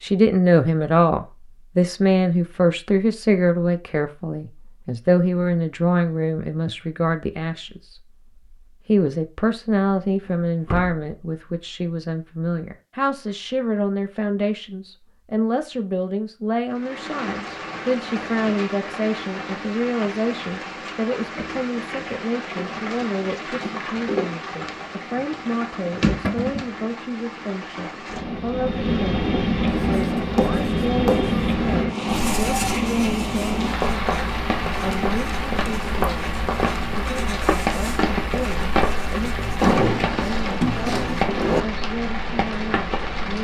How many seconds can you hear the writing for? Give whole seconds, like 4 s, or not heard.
10 s.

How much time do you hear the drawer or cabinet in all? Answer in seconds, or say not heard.
3 s.